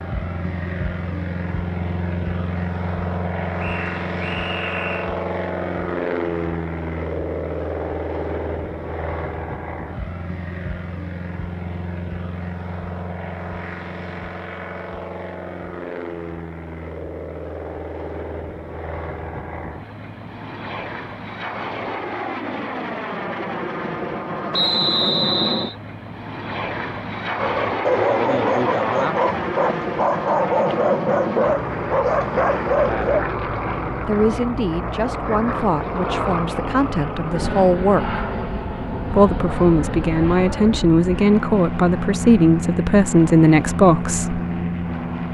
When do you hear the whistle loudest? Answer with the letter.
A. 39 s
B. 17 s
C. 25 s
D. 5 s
C.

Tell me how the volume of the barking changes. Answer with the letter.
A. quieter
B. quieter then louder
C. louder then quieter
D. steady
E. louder
D.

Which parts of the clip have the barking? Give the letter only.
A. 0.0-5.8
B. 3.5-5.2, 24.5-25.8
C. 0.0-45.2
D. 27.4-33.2
D.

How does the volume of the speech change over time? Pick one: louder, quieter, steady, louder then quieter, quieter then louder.
louder.